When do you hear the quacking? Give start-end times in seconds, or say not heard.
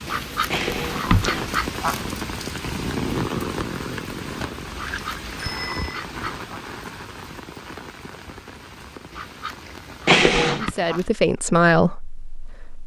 0.1-2.0, 4.8-6.6, 9.1-11.1.